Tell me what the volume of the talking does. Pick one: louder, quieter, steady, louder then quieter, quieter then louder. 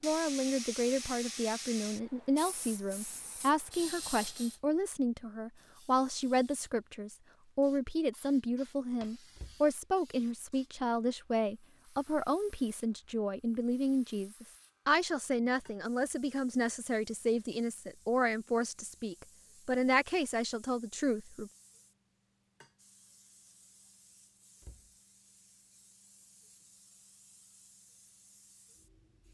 steady.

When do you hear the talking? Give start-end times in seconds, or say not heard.
0.0-21.5.